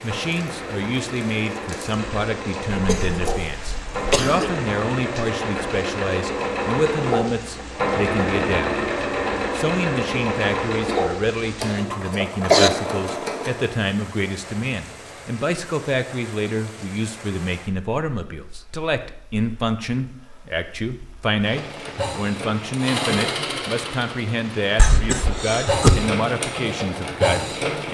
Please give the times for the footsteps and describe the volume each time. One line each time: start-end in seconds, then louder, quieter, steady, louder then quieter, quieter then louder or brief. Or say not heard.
not heard.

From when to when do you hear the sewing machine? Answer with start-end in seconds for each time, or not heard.
0.0-13.8, 21.4-27.8.